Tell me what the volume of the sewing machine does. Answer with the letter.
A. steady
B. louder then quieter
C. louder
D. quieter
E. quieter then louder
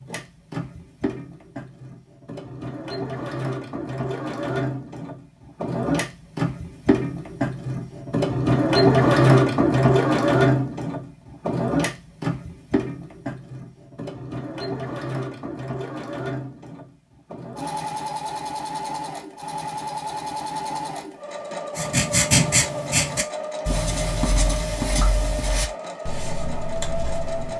B.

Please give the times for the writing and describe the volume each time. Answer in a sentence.
You can hear the writing from 21.8 to 27.5 s, getting quieter.